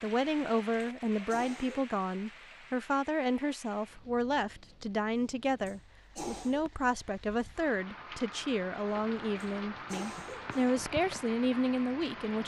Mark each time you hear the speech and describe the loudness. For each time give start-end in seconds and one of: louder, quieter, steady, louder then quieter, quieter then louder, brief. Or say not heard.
0.0-12.4 steady.